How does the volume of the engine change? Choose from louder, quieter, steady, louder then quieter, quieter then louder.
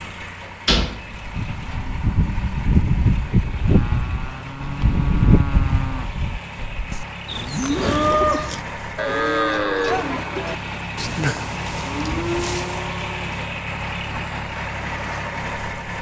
louder.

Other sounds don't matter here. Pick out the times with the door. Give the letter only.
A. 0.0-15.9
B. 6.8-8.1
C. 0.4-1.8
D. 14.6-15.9
C.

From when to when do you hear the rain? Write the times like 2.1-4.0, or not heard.
not heard.